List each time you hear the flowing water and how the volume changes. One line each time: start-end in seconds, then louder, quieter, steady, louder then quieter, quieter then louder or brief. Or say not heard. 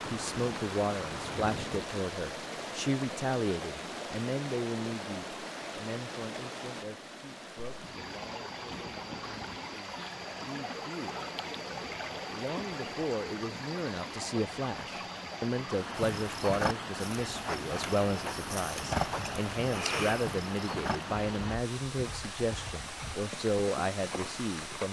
0.0-24.8 steady.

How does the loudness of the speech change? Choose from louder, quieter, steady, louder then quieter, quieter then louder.
quieter then louder.